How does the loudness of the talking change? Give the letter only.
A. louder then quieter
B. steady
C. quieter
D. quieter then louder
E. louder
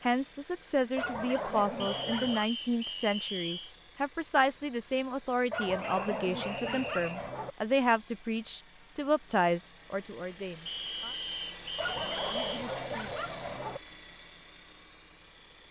B.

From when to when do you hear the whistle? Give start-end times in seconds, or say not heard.
1.8-3.8, 5.8-7.2, 10.7-12.7.